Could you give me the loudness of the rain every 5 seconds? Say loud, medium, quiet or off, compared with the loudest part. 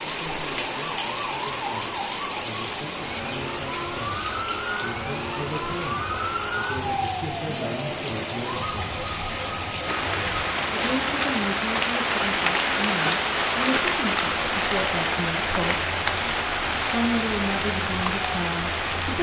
medium, medium, loud, loud.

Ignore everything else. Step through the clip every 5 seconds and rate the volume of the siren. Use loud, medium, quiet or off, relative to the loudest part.
loud, loud, medium, medium.